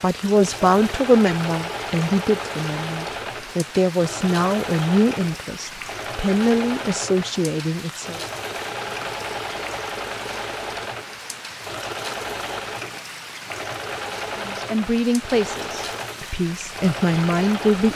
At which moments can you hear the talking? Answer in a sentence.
You can hear the talking from 0.0 to 8.2 s and from 14.3 to 17.9 s.